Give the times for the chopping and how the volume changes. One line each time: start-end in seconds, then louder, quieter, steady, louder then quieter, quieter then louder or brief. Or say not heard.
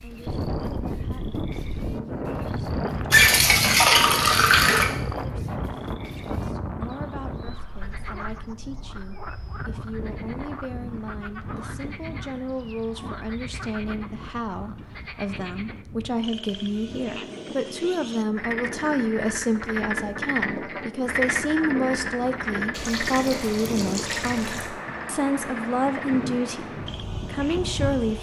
not heard.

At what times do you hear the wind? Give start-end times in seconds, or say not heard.
0.0-28.1.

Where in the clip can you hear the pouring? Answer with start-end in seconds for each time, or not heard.
3.1-4.8, 22.7-24.7.